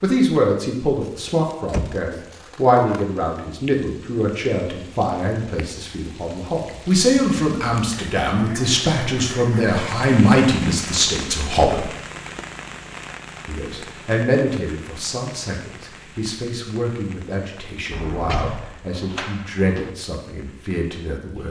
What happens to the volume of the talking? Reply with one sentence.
The loudness of the talking goes down.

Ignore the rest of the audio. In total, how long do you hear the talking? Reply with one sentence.
You can hear the talking for 20 seconds altogether.